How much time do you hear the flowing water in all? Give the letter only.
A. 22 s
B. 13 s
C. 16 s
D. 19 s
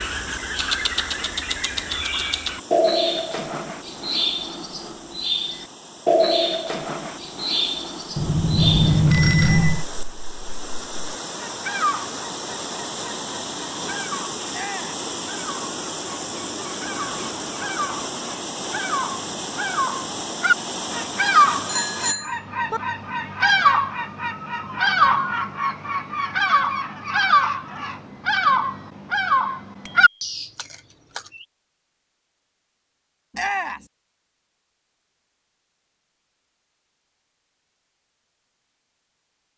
A.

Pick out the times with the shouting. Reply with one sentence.
You can hear the shouting from 9.4 to 9.8 s, from 14.5 to 15.1 s and from 33.3 to 33.9 s.